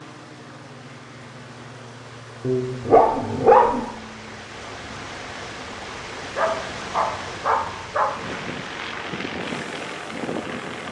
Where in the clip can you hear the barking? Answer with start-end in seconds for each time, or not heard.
2.4-3.9, 6.3-8.1.